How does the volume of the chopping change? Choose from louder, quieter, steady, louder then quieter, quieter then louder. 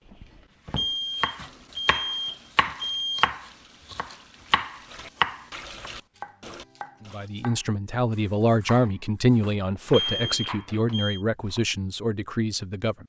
quieter.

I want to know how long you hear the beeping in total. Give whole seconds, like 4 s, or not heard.
4 s.